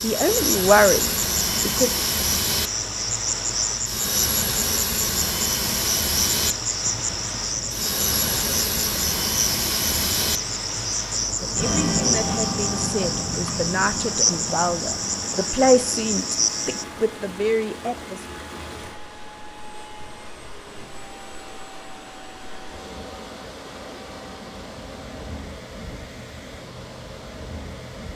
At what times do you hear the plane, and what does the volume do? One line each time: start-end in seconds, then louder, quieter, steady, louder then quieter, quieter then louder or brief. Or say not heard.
0.0-27.9 quieter.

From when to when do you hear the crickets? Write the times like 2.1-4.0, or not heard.
0.0-16.9.